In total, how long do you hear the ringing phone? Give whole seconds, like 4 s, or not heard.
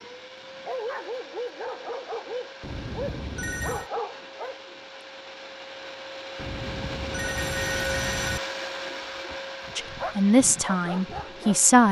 3 s.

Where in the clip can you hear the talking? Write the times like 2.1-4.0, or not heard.
9.8-11.8.